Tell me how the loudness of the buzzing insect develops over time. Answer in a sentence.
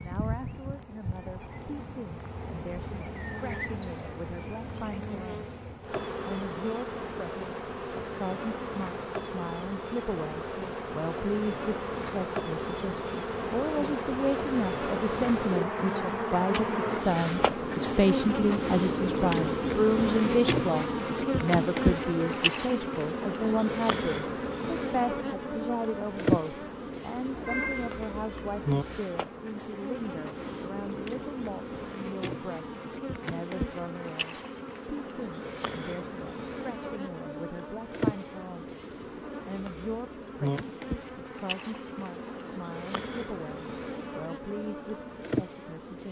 The volume of the buzzing insect goes up, then down.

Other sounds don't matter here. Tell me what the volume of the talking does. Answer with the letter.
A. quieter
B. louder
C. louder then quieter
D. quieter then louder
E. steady
C.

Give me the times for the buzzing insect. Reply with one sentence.
The buzzing insect can be heard from 0.0 to 46.0 s.